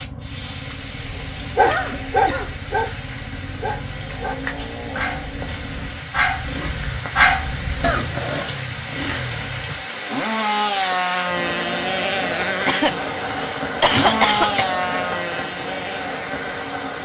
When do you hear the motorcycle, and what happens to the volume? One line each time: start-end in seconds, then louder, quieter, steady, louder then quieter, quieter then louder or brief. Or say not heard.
0.0-16.8 louder.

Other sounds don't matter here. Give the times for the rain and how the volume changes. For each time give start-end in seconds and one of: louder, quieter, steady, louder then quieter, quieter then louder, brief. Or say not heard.
0.0-17.0 louder.